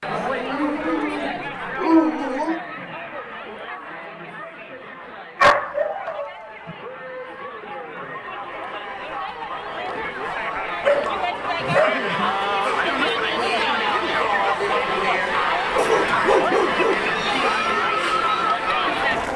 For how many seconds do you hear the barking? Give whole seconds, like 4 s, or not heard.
7 s.